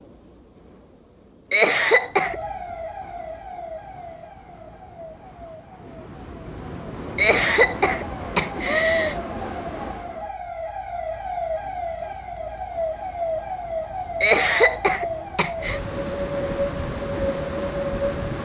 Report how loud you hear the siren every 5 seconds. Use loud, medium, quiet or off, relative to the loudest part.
medium, medium, loud, loud.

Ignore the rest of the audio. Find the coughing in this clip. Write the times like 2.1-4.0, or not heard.
1.5-2.4, 7.2-9.2, 14.2-15.8.